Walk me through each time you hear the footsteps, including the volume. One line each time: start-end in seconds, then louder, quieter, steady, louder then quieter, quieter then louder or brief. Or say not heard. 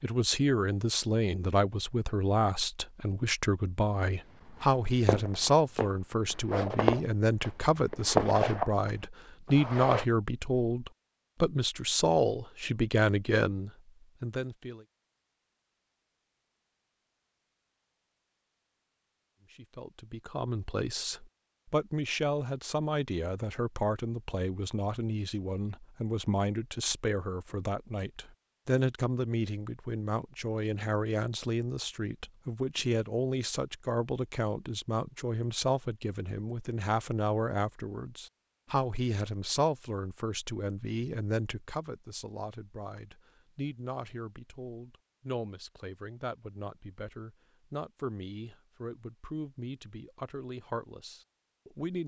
4.5-10.1 louder then quieter.